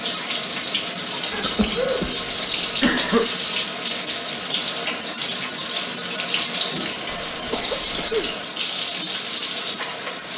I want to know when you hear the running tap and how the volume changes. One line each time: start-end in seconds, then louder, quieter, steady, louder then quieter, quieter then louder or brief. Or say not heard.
0.0-10.3 steady.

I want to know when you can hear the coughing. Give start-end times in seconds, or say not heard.
1.3-3.3, 7.0-8.3.